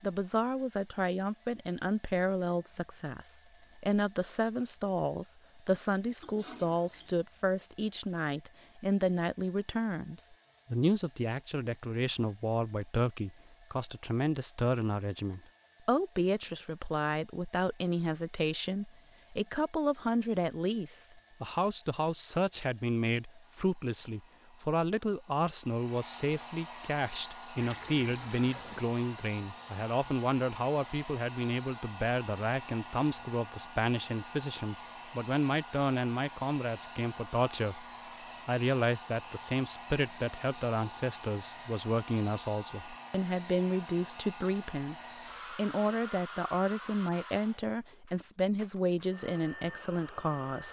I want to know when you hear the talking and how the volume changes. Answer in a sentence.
The talking can be heard from 0.0 to 37.9 s, at a steady volume; and from 38.5 to 50.6 s, at a steady volume.